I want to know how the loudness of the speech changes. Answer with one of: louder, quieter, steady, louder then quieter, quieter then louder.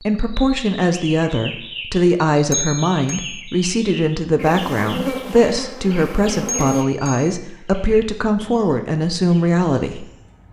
steady.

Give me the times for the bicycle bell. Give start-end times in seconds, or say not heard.
2.5-3.4, 6.5-7.2.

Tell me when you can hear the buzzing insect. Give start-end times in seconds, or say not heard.
4.3-6.8.